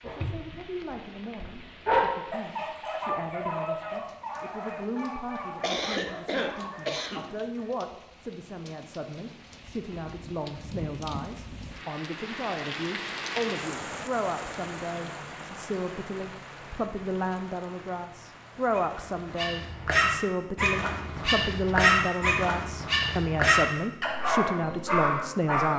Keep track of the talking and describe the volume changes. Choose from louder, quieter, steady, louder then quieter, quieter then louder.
louder.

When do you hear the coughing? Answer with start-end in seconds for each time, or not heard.
5.6-7.3.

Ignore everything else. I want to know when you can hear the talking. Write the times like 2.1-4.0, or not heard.
0.0-25.7.